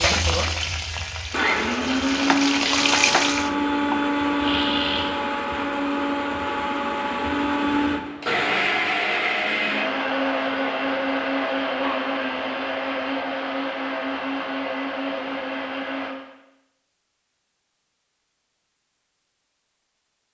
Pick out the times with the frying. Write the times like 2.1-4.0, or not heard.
0.0-3.5.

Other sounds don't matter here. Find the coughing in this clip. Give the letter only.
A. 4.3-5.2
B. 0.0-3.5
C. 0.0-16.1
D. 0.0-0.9
A.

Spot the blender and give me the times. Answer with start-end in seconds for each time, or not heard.
0.0-16.1.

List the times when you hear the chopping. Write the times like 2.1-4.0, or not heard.
2.2-4.0.